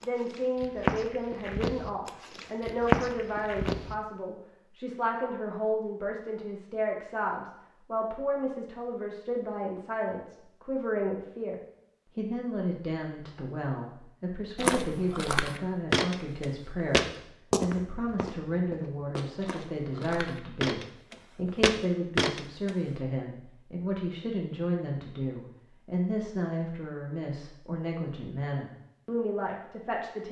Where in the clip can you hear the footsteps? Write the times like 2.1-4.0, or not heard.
0.0-4.0, 14.6-22.7.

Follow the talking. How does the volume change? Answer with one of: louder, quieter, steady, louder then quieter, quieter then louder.
steady.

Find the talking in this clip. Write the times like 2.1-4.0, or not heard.
0.0-30.2.